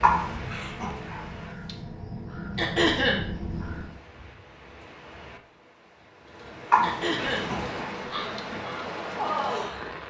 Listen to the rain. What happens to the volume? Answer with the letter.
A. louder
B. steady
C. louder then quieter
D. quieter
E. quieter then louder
E.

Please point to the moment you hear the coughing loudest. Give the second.
3 s.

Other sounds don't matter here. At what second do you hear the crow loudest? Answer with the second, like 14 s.
9 s.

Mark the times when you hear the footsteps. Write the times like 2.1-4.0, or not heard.
not heard.